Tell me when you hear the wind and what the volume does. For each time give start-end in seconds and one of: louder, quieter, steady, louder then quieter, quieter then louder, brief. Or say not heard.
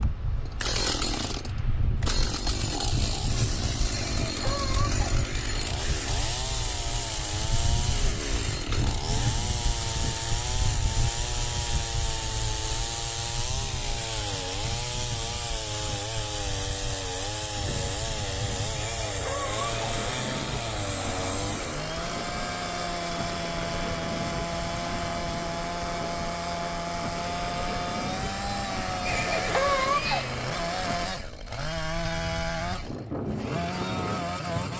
0.0-34.7 steady.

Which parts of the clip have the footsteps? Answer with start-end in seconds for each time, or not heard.
not heard.